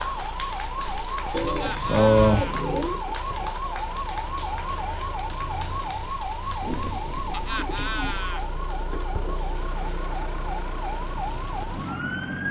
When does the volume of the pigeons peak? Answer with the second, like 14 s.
2 s.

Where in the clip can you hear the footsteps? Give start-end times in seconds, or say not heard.
not heard.